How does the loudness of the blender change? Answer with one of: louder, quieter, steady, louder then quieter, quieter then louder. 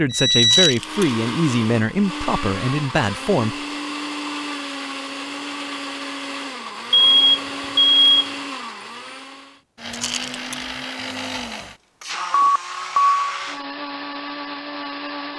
steady.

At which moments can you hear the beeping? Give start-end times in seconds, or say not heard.
0.1-0.8, 6.9-8.3, 12.3-13.2.